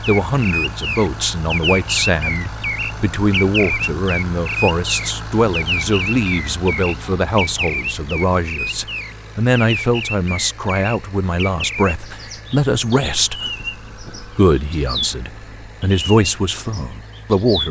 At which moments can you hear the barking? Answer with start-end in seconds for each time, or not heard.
not heard.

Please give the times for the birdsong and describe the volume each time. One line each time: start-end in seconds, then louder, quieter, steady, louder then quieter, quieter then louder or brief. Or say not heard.
0.0-17.6 quieter.